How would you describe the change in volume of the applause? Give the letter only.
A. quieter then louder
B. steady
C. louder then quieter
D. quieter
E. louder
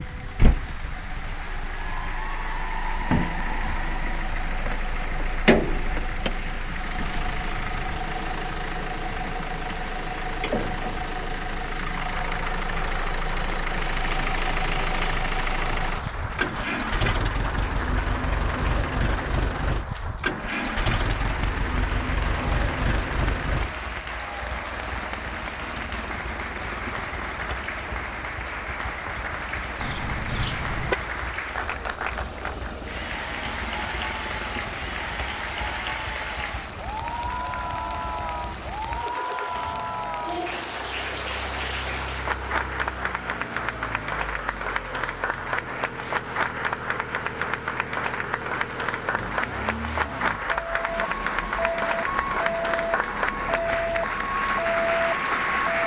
E.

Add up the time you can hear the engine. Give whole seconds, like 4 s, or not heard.
56 s.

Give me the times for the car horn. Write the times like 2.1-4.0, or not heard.
15.9-16.9, 29.8-30.9.